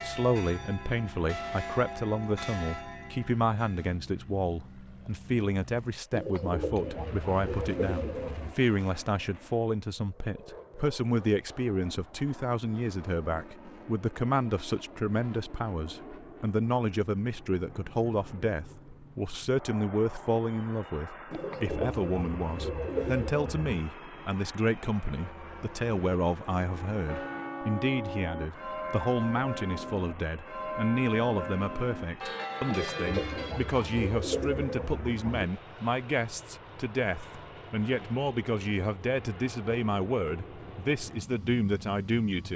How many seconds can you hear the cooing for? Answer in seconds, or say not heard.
8 s.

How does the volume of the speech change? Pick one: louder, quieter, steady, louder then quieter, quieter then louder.
steady.